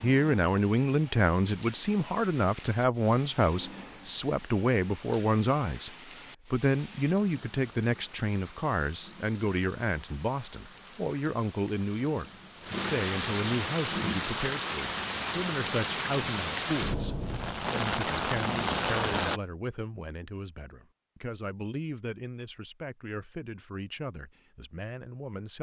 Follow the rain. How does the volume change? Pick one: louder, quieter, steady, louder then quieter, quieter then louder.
louder.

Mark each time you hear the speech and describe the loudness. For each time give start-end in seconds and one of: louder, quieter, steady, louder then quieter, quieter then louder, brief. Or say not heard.
0.0-25.5 quieter.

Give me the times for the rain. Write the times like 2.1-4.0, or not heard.
0.0-19.4.